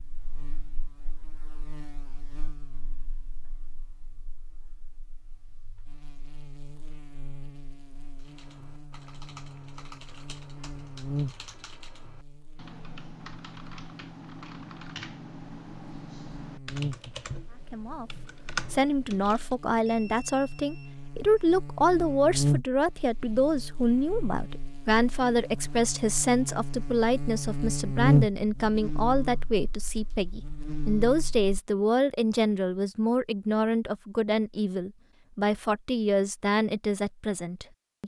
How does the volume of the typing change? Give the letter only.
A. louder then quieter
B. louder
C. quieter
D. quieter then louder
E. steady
B.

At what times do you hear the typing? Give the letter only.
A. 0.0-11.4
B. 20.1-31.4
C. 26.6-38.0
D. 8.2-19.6
D.